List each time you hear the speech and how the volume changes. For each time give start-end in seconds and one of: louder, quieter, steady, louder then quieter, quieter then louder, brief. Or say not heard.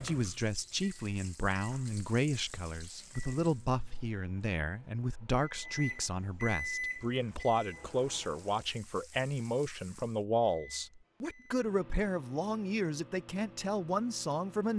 0.0-14.7 steady.